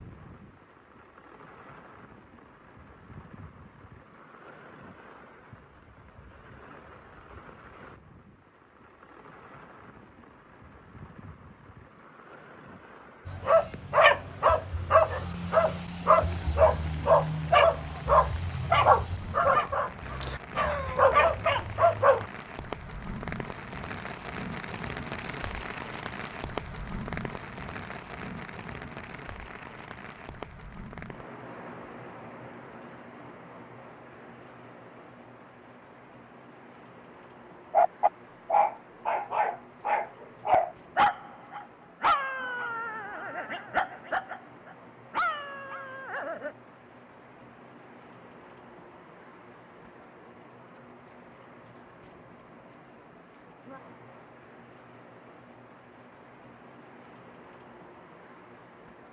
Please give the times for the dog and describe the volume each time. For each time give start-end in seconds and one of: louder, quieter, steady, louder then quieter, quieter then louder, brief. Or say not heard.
13.2-22.2 steady
37.7-46.5 quieter.